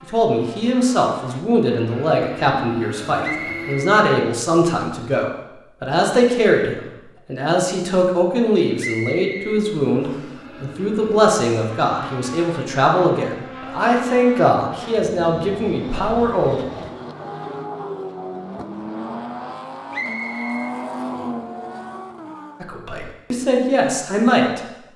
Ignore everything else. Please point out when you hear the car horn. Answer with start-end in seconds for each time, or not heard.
not heard.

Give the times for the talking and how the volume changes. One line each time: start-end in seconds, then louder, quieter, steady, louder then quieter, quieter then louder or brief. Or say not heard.
0.0-16.6 steady
22.6-24.6 brief.